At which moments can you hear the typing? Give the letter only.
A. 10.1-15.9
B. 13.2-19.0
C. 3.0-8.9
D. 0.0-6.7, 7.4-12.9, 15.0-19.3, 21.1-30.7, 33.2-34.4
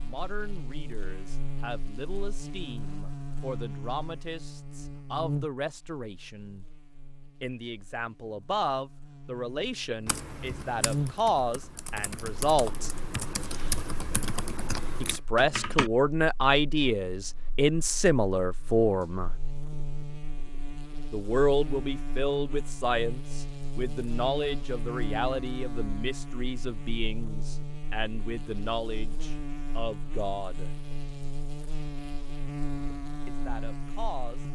A.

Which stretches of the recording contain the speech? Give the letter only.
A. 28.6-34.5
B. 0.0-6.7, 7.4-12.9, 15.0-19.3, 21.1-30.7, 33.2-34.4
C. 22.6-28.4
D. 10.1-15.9
B.